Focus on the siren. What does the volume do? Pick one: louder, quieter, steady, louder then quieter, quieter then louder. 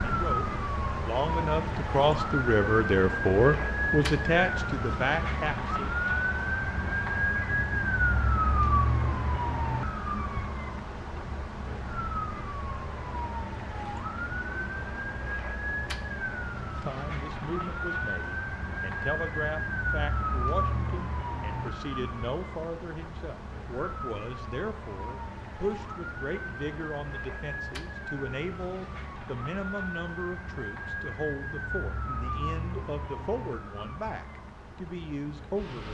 quieter.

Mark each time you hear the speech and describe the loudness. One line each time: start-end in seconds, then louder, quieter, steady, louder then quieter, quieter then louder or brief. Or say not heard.
0.0-5.9 louder then quieter
16.7-35.8 steady.